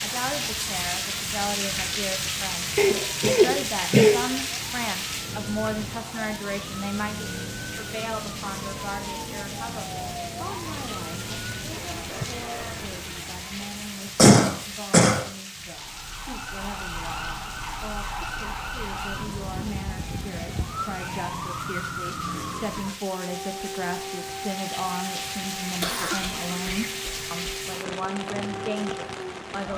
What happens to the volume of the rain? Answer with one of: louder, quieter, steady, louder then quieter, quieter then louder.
quieter then louder.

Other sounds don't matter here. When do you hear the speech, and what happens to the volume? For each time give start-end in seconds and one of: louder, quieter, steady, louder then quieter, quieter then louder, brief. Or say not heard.
0.0-29.7 quieter then louder.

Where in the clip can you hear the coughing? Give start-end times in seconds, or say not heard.
2.8-4.2, 14.2-15.2, 25.8-27.6.